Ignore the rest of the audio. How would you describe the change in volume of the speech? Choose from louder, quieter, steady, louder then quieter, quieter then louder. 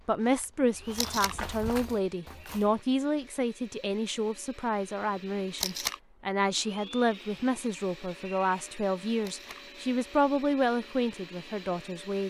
steady.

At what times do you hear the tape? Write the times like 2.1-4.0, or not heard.
0.9-1.4, 5.5-6.0, 9.2-9.6.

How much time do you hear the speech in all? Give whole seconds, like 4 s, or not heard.
12 s.